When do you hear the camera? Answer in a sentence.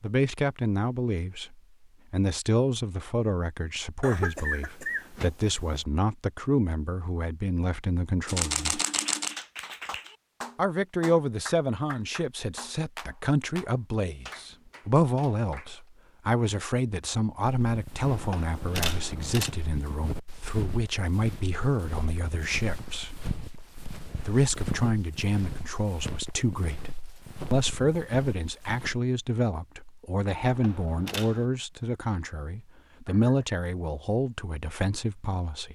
You can hear the camera from 8.2 to 9.4 s, from 18.0 to 19.5 s and from 30.3 to 31.5 s.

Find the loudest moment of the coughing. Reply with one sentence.
The volume of the coughing peaks at 4 seconds.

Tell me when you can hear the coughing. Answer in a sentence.
The coughing can be heard from 4.0 to 5.8 s and from 33.0 to 33.6 s.